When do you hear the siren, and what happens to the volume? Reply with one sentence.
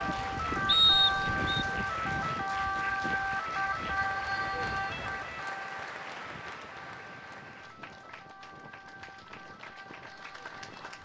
You can hear the siren from 0.0 to 11.0 s, getting quieter.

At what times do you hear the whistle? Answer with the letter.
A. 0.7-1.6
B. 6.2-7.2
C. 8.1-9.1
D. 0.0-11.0
A.